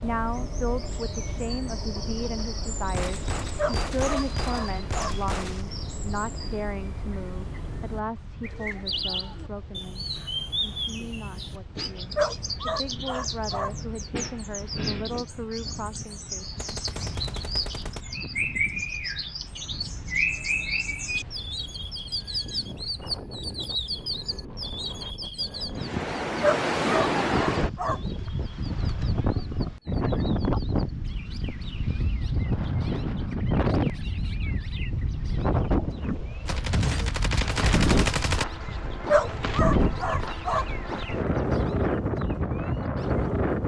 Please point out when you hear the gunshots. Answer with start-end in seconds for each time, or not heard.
2.9-5.7, 16.6-18.1, 36.5-38.5.